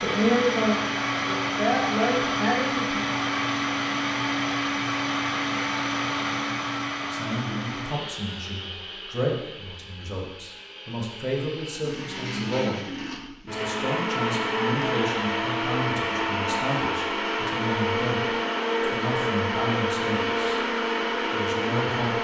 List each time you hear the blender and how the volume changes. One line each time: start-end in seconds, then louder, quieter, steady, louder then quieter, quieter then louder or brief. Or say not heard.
0.0-22.2 quieter then louder.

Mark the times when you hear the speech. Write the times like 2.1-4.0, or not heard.
0.0-3.0, 7.1-20.6, 21.3-22.2.